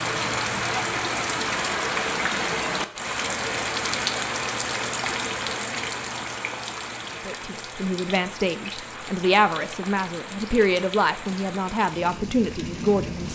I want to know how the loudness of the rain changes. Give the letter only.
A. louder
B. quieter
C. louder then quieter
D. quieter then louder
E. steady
B.